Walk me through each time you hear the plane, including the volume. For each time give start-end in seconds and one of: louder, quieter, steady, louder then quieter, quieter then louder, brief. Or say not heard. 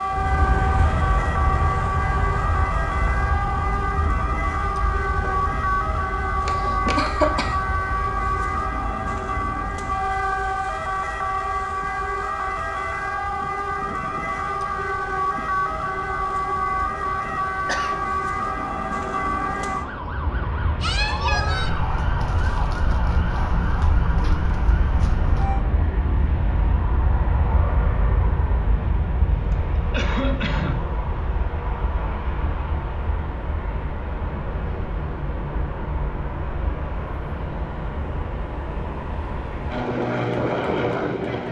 0.0-41.4 quieter then louder.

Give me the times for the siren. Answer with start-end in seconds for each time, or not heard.
0.0-25.6.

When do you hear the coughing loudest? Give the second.
7 s.